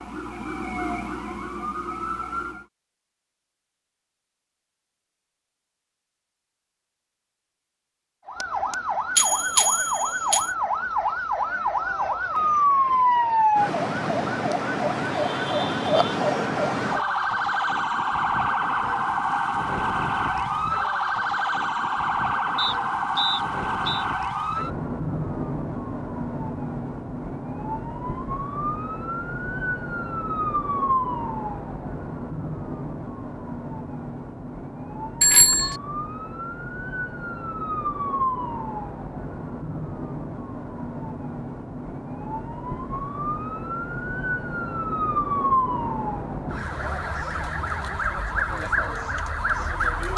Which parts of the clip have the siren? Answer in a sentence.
You can hear the siren from 0.0 to 2.6 s and from 8.2 to 50.1 s.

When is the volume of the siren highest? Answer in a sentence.
The volume of the siren peaks at 13 seconds.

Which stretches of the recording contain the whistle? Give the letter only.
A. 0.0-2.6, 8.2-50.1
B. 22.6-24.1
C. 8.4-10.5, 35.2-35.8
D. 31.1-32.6
B.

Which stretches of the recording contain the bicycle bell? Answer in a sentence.
The bicycle bell can be heard from 8.4 to 10.5 s and from 35.2 to 35.8 s.